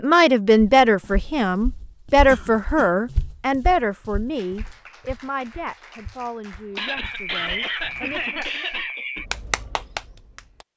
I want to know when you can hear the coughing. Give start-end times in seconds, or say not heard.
2.2-3.0, 6.8-9.2.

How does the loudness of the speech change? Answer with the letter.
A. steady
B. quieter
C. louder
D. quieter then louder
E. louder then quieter
B.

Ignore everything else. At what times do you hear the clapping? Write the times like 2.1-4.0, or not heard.
4.3-10.7.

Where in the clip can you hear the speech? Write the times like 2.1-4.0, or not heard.
0.0-8.4.